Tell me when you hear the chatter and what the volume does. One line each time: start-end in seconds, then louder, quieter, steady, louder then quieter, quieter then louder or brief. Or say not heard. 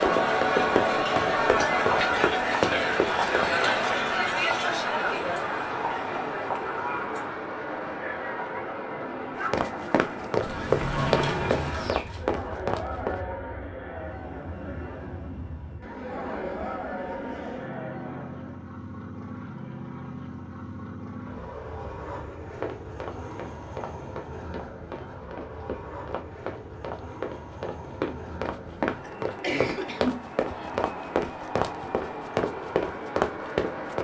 0.0-18.6 quieter.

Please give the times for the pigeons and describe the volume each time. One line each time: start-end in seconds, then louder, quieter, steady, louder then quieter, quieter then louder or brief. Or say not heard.
not heard.